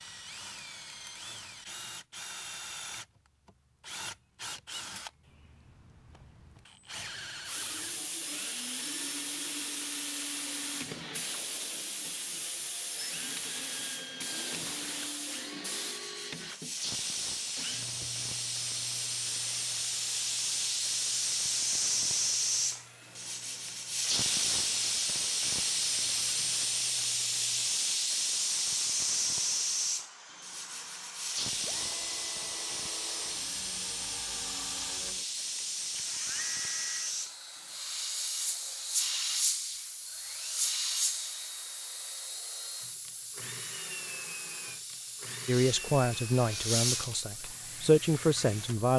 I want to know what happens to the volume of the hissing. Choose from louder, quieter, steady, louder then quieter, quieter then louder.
louder then quieter.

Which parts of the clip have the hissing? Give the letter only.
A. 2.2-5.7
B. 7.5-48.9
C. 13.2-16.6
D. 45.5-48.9
B.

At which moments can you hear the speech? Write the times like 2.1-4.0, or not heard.
45.5-48.9.